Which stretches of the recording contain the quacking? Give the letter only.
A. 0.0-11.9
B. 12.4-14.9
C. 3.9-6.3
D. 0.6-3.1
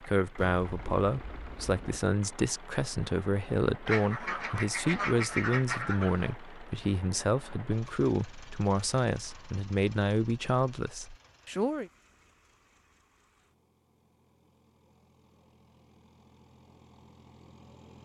C.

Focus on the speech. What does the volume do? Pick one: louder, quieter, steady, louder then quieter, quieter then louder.
steady.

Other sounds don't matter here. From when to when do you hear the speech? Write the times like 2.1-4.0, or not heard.
0.0-11.9.